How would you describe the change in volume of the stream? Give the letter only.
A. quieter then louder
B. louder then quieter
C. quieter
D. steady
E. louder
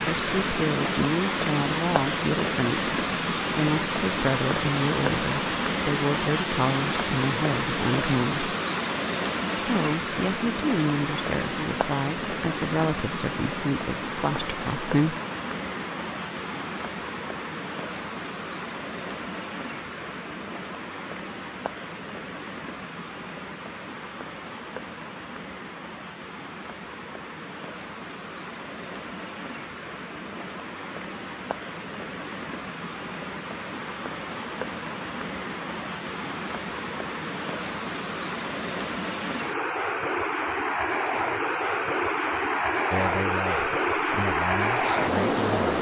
A.